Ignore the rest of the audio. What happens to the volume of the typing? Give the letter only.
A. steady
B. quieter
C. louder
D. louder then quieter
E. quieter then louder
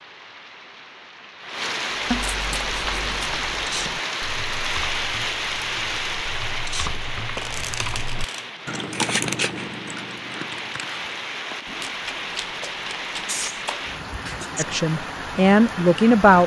D.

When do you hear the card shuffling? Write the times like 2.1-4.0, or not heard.
2.1-3.3, 7.2-8.7, 11.7-13.9.